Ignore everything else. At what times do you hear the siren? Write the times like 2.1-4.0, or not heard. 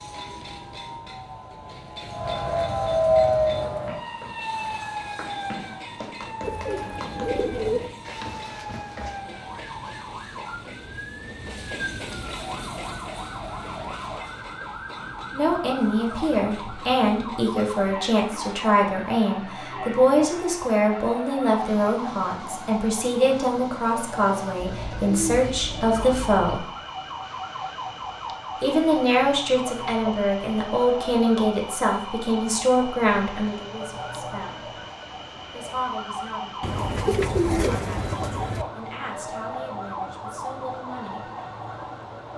0.0-42.3.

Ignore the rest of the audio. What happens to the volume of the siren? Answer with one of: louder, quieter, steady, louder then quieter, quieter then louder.
quieter.